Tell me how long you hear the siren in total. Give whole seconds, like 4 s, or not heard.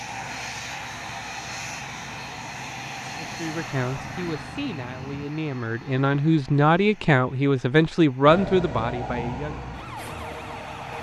8 s.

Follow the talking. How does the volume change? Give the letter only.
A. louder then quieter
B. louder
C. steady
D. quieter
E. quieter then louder
B.